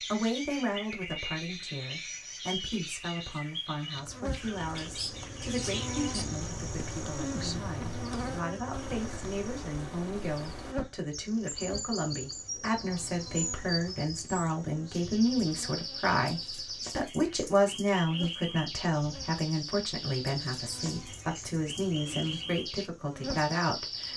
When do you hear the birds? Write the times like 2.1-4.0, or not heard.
0.0-24.1.